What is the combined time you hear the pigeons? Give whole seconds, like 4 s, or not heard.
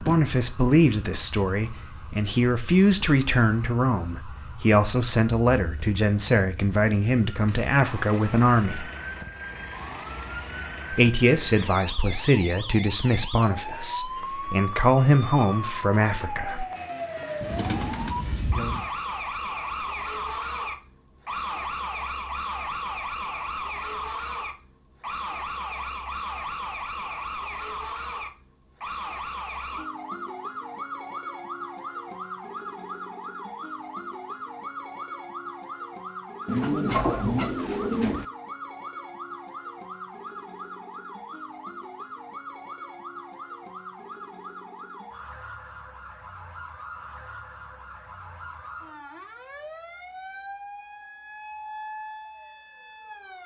3 s.